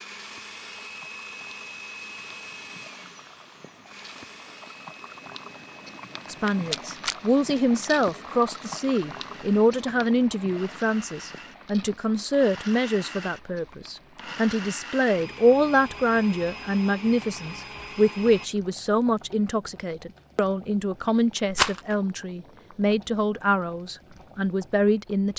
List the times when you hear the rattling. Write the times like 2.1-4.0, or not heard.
6.2-7.2, 21.5-21.9.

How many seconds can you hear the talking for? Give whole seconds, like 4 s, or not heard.
19 s.